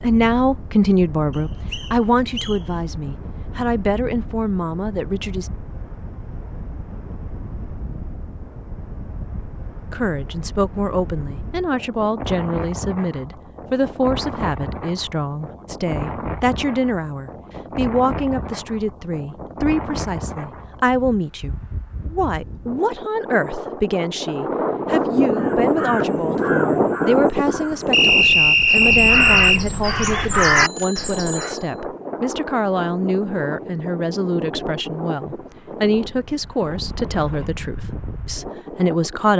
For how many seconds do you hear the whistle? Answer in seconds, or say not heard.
3 s.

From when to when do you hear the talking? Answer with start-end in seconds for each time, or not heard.
0.0-5.5, 9.9-39.3.